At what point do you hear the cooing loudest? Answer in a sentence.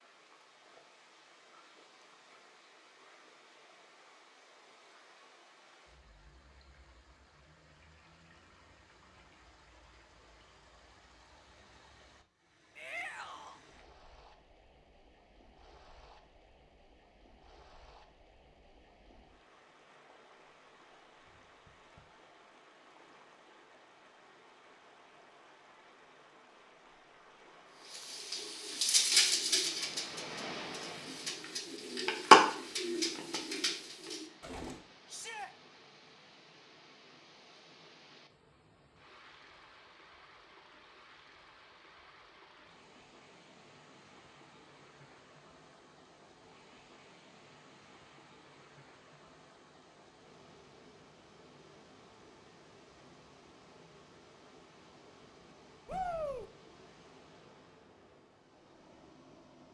The volume of the cooing peaks at 32 seconds.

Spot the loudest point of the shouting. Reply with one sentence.
The loudest moment of the shouting is at 56 seconds.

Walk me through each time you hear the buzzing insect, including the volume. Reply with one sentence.
You can't hear the buzzing insect here.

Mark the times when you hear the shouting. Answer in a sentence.
You can hear the shouting from 12.8 to 13.6 s, from 35.0 to 35.5 s and from 55.9 to 56.5 s.